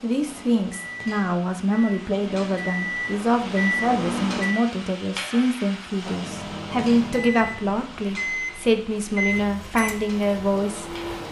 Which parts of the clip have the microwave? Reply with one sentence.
The microwave can be heard from 0.0 to 4.6 s and from 6.1 to 11.2 s.